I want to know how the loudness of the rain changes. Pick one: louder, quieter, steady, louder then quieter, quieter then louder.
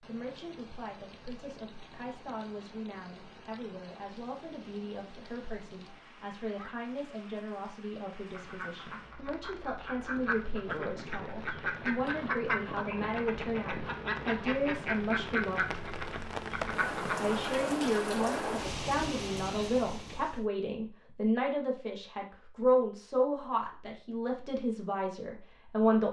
louder.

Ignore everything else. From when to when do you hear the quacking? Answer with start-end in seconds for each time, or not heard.
8.3-17.6.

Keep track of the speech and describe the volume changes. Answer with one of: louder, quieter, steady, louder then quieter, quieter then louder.
louder.